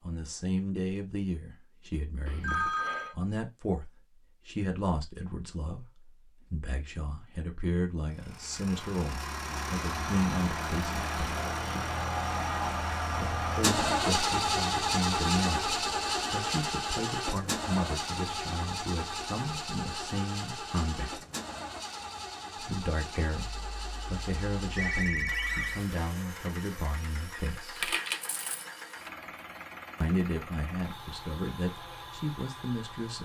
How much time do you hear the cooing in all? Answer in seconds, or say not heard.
not heard.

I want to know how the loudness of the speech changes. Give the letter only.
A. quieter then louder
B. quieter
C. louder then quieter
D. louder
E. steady
E.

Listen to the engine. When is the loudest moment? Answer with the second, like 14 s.
14 s.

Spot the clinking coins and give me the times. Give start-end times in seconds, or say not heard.
27.8-29.1.